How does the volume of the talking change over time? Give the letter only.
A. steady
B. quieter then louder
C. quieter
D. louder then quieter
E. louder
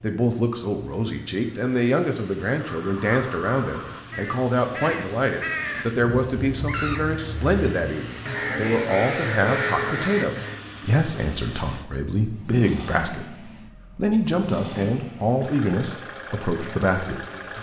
A.